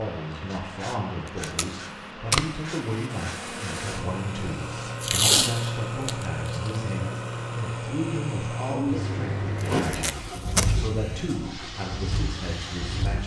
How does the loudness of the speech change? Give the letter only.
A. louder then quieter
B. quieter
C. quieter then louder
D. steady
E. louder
D.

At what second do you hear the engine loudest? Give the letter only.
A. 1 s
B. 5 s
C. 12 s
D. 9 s
D.